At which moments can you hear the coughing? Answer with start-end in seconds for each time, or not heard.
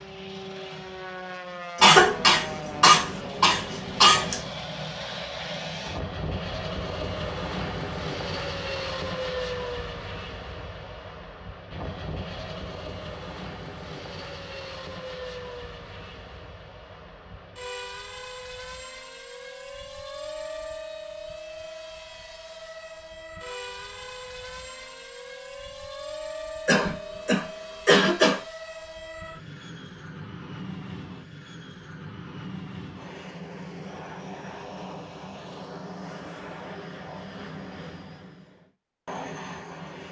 1.8-4.5, 26.6-28.4.